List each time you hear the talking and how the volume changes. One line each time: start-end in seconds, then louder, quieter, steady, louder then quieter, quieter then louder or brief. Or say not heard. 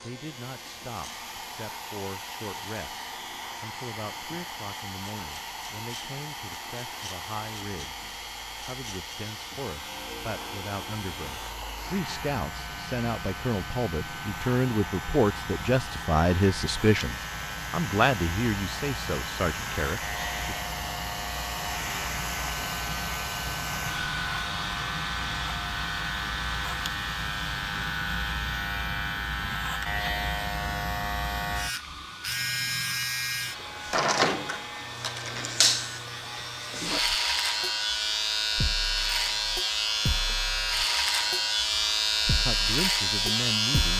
0.0-20.6 louder
42.4-43.9 brief.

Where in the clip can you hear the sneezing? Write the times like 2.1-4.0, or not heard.
not heard.